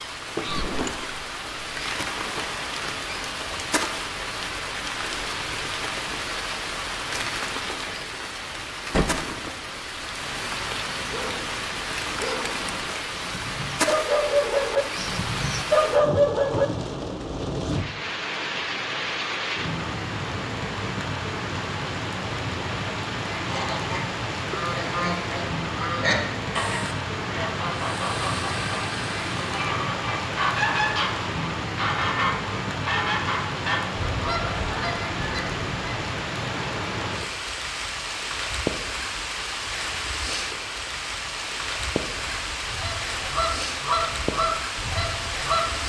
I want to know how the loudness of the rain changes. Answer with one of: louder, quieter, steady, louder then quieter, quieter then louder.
steady.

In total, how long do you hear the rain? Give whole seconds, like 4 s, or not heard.
46 s.